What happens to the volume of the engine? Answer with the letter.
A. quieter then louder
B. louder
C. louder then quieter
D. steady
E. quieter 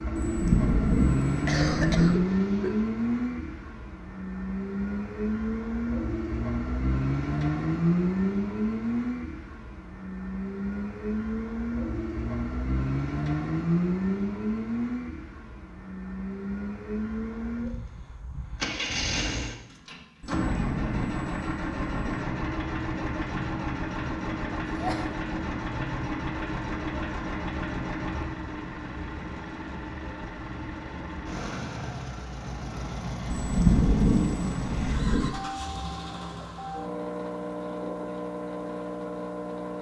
E.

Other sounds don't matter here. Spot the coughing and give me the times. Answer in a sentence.
The coughing can be heard from 1.4 to 2.8 s and from 24.7 to 25.1 s.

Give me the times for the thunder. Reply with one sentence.
You can hear the thunder from 0.1 to 2.1 s, from 20.2 to 22.2 s and from 33.3 to 35.3 s.